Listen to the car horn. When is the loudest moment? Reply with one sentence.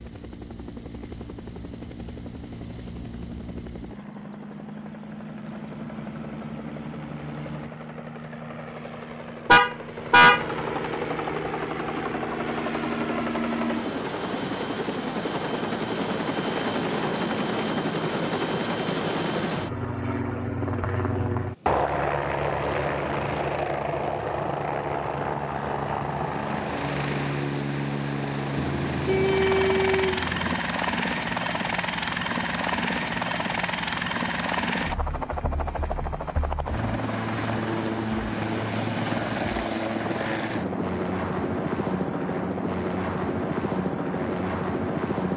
The volume of the car horn peaks at 10 seconds.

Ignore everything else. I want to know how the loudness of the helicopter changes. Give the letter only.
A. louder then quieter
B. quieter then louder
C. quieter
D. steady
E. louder
E.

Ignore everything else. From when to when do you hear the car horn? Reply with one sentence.
The car horn can be heard from 9.4 to 10.4 s and from 28.7 to 30.6 s.